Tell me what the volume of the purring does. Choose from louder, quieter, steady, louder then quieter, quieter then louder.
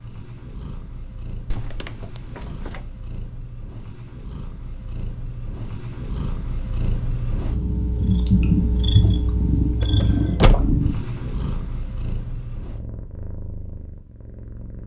louder then quieter.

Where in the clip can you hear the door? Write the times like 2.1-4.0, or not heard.
1.4-2.9, 9.8-10.9.